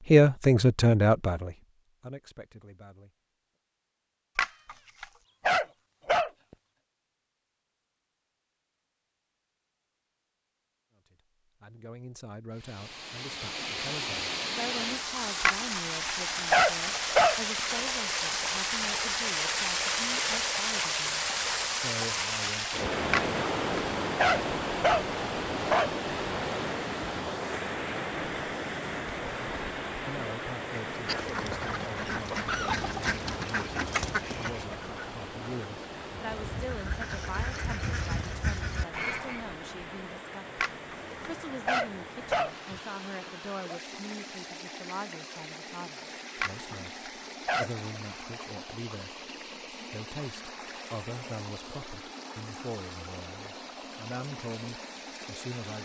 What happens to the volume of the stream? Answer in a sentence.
The volume of the stream goes down.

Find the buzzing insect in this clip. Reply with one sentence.
The buzzing insect can't be heard in this clip.